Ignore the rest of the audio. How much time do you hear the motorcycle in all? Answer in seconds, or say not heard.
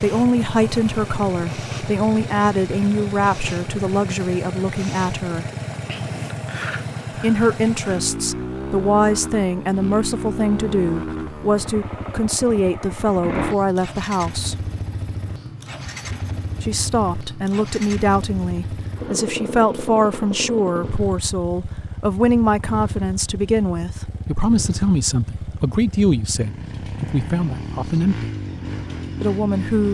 30 s.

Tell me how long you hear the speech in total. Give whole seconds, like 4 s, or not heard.
25 s.